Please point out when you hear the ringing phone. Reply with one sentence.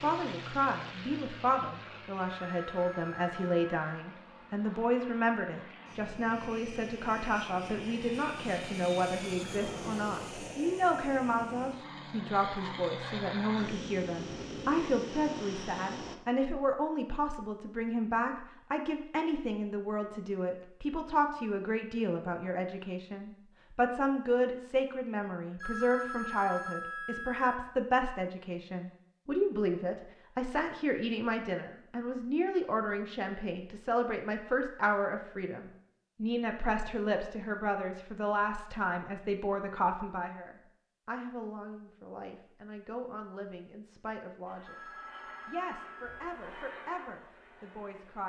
The ringing phone can be heard from 2.2 to 3.8 s, from 25.6 to 27.6 s and from 44.6 to 46.4 s.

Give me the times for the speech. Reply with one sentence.
You can hear the speech from 0.0 to 48.2 s.